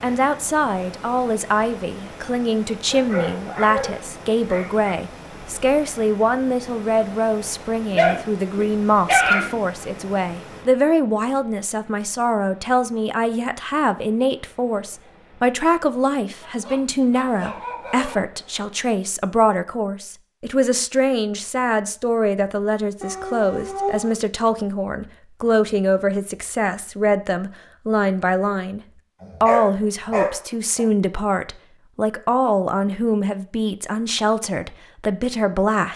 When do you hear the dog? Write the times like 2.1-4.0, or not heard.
2.9-4.9, 7.9-9.6, 16.4-18.2, 23.0-24.1, 29.2-30.9.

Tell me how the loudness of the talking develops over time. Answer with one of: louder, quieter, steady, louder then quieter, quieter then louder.
steady.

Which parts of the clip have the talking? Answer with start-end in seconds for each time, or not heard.
0.0-28.8, 29.4-35.9.